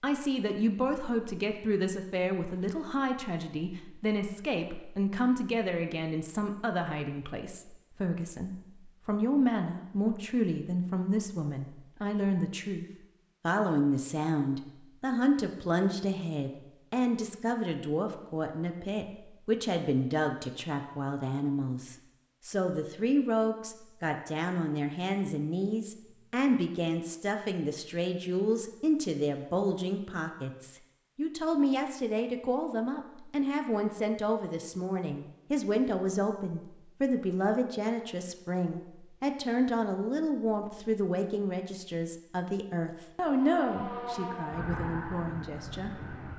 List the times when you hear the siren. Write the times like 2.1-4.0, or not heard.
43.2-46.3.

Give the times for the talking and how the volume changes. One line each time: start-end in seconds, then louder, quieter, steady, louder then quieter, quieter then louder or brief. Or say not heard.
0.0-46.1 steady.